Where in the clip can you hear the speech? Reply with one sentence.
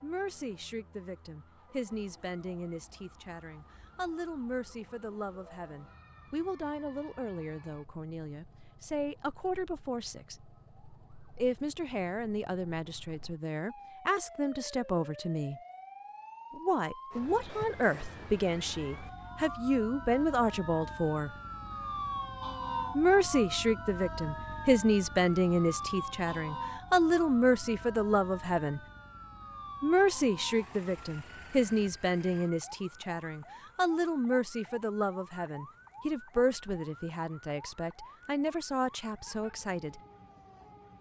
You can hear the speech from 0.0 to 10.3 s, from 11.3 to 15.6 s, from 16.5 to 21.3 s, from 22.9 to 28.8 s and from 29.8 to 40.0 s.